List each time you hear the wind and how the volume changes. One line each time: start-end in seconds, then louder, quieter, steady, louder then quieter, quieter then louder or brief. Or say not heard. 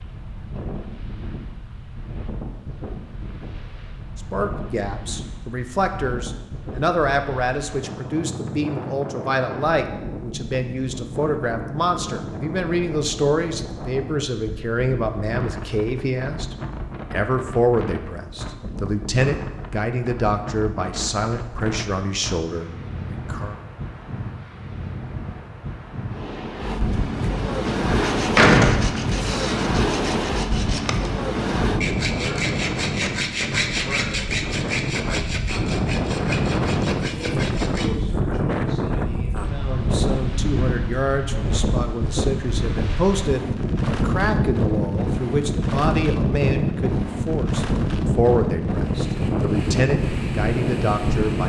0.0-51.4 louder.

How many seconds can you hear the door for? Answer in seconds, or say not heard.
2 s.